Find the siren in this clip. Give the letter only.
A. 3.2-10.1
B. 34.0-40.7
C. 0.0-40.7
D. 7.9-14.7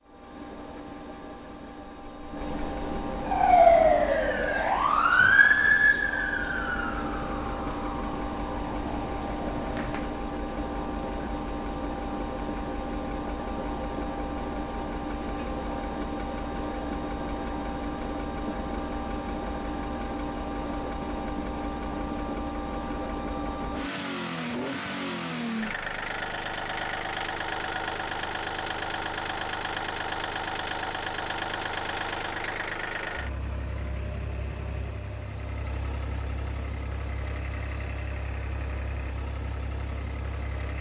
A.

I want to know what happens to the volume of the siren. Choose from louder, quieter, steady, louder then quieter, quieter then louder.
quieter.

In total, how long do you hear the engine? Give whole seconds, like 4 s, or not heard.
41 s.